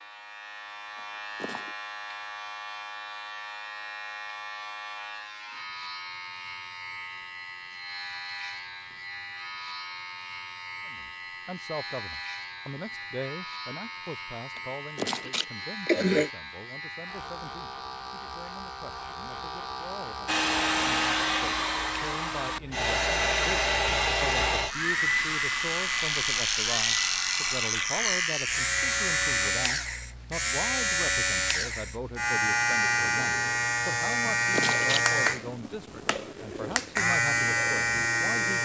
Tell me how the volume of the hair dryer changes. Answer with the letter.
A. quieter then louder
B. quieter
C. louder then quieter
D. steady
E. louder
B.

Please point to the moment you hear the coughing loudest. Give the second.
16 s.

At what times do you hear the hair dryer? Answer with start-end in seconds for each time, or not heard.
20.2-29.4.